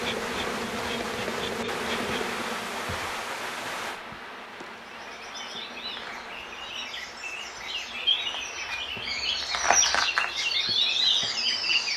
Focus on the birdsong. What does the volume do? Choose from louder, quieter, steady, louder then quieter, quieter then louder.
louder.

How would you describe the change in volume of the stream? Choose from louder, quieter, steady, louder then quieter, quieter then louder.
quieter.